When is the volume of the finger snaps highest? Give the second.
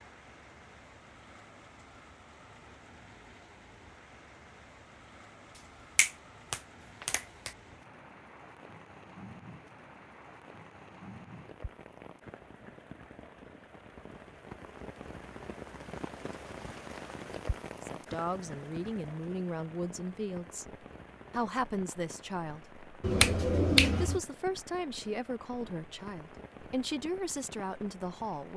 24 s.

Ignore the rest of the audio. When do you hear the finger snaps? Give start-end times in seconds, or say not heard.
6.0-7.5, 23.0-24.2.